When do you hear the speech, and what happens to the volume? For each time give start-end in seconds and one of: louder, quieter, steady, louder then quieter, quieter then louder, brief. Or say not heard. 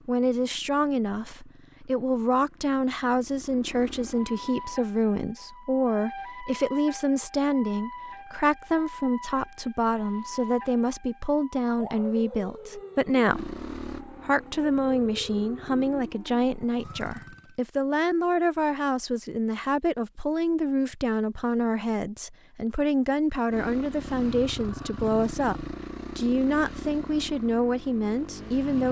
0.1-28.8 steady.